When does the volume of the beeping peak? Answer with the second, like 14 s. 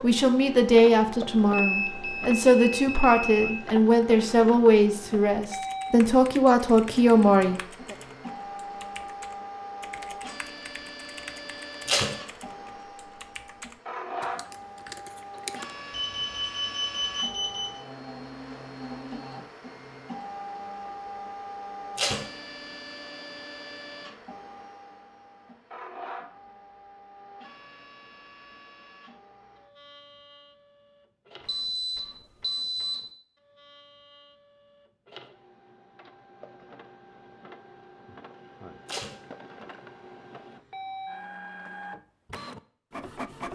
2 s.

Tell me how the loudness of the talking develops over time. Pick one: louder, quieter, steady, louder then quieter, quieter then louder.
steady.